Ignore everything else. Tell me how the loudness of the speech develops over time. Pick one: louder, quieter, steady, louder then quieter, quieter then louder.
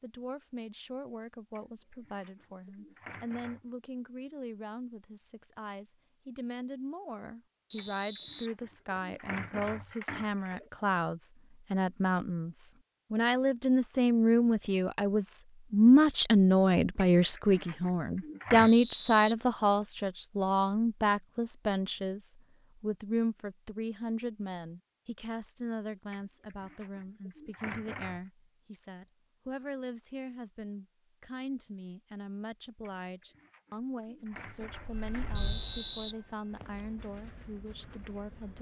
louder then quieter.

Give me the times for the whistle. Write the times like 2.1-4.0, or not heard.
7.7-9.2, 18.6-19.9, 35.4-36.9.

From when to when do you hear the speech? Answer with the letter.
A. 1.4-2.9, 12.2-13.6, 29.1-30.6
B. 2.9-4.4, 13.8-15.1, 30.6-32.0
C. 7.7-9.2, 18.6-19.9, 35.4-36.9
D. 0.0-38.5
D.